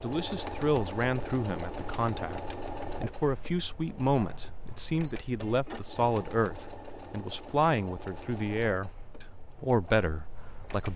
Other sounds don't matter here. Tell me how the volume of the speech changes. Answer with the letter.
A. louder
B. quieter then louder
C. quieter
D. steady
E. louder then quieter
D.